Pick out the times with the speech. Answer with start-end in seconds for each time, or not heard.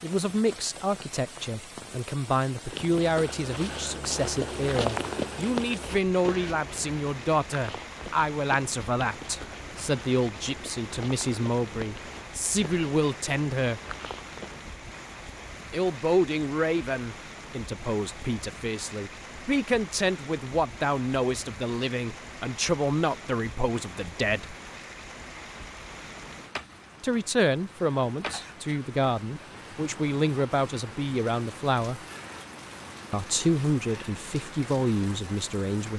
0.0-13.8, 15.7-24.6, 27.0-32.0, 33.1-35.9.